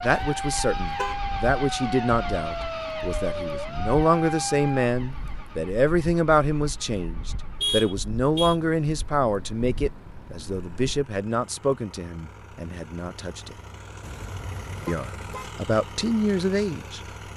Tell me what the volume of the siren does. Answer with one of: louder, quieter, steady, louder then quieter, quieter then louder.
steady.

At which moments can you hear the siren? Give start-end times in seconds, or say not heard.
0.2-4.9.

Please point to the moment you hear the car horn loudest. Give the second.
8 s.